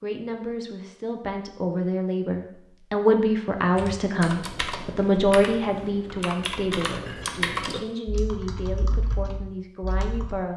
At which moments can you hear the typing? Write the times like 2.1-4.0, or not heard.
3.7-10.3.